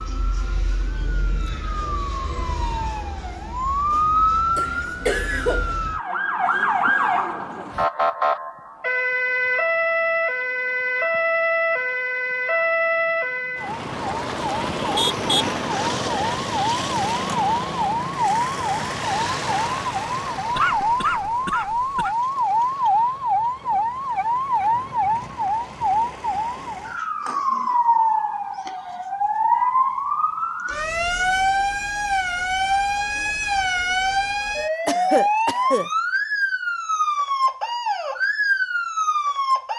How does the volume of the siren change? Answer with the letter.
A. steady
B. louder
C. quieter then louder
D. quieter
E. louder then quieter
A.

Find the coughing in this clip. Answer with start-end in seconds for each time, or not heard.
4.5-5.8, 20.6-22.1, 34.9-35.9.